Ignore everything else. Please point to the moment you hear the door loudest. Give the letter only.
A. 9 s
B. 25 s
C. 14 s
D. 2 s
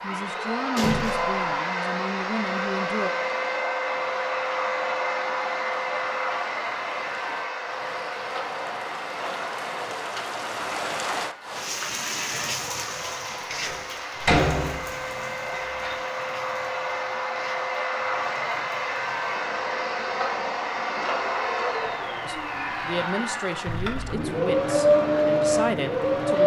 C.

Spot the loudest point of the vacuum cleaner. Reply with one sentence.
The loudest moment of the vacuum cleaner is at 25 seconds.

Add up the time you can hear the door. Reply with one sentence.
You can hear the door for 4 seconds altogether.